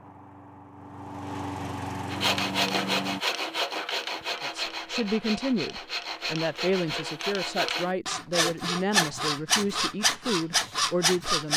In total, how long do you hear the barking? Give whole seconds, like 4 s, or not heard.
not heard.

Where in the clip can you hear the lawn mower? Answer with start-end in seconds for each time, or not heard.
0.0-3.2.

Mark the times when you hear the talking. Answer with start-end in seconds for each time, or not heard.
4.4-11.5.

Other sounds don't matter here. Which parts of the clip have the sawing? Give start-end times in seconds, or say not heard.
2.1-11.5.